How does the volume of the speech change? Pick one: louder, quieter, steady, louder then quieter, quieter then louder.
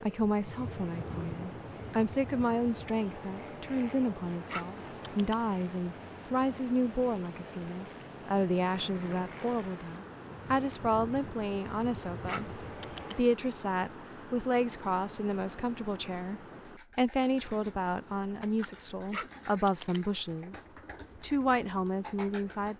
steady.